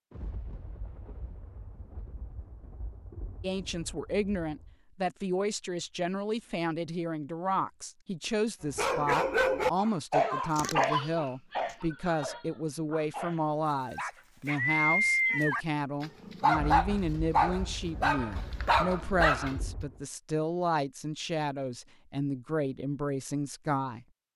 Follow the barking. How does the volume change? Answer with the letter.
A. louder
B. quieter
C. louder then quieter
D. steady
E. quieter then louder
E.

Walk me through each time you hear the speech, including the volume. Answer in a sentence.
The speech can be heard from 3.4 to 24.1 s, at a steady volume.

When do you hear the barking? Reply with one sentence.
You can hear the barking from 8.8 to 19.6 s.